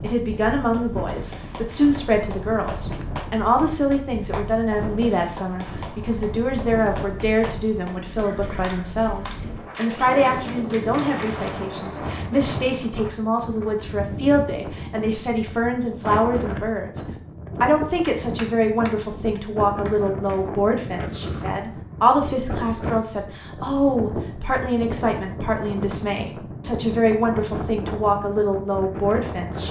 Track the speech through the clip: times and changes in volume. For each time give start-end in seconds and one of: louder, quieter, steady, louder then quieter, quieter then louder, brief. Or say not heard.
0.0-29.6 steady.